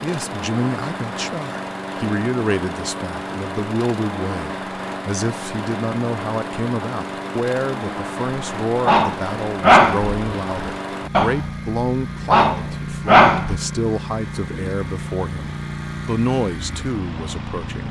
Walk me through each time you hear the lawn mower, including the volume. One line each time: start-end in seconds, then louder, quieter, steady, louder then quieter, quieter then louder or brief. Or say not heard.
0.0-17.8 steady.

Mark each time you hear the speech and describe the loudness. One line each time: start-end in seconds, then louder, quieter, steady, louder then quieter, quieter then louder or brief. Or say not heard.
0.0-17.8 steady.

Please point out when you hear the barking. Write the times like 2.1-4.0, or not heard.
8.8-11.4, 12.3-13.6.